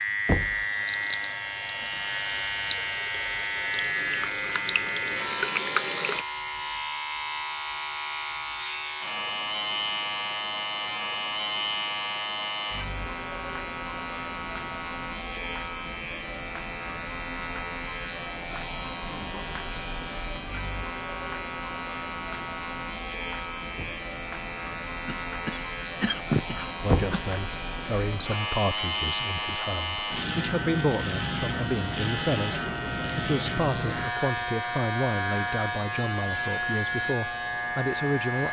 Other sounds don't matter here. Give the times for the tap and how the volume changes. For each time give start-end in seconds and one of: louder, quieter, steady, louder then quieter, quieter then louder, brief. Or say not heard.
0.4-6.2 quieter then louder.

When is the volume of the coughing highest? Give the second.
26 s.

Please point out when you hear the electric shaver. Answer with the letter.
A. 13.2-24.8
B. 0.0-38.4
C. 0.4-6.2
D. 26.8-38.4
B.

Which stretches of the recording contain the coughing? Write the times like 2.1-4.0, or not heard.
25.1-27.4.